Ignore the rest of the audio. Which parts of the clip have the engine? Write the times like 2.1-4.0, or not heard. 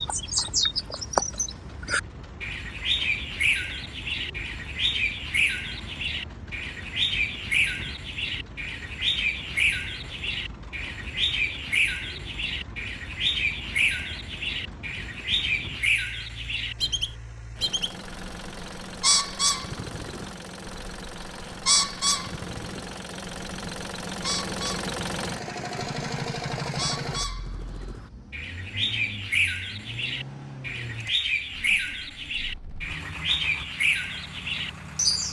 0.0-35.2.